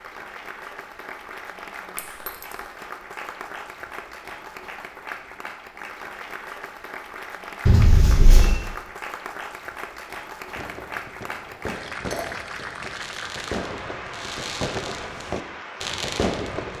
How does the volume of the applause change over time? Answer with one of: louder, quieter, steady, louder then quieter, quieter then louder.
steady.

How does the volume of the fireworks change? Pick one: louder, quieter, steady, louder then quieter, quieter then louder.
louder.